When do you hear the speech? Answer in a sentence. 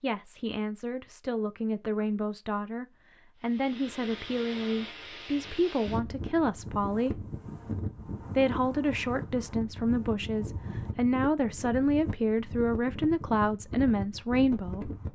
The speech can be heard from 0.0 to 7.2 s and from 8.3 to 14.9 s.